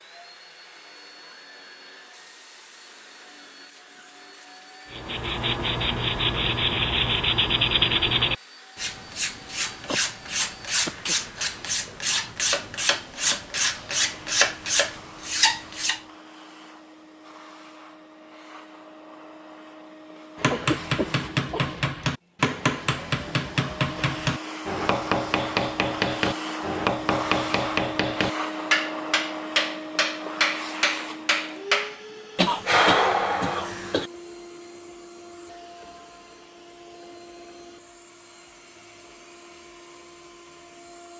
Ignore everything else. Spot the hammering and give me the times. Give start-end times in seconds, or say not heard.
20.4-32.0.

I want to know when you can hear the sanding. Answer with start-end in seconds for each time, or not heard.
4.9-16.0.